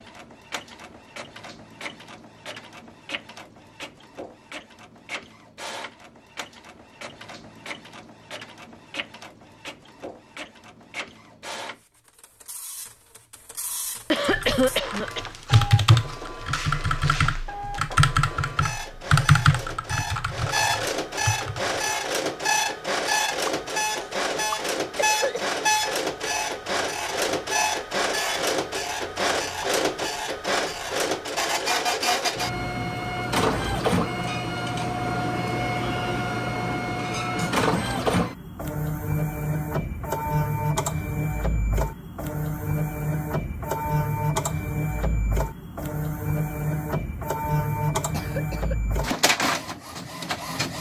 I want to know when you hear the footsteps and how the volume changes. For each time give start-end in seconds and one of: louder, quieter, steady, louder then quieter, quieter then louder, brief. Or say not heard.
not heard.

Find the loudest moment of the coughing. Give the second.
15 s.